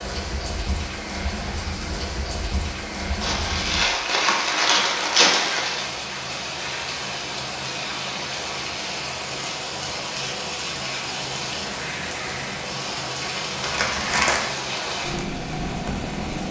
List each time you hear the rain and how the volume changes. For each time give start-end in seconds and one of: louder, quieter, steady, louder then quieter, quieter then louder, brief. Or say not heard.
0.0-16.4 steady.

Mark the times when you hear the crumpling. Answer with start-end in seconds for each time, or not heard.
3.2-5.9, 13.6-14.4.